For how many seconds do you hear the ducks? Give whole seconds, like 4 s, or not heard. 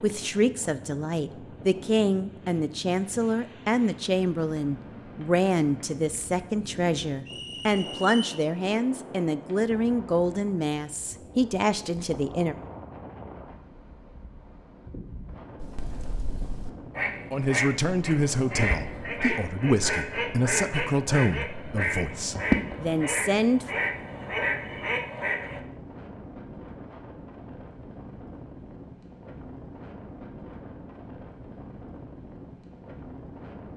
10 s.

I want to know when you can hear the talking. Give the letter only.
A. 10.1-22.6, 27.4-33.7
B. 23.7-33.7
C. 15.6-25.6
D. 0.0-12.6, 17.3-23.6
D.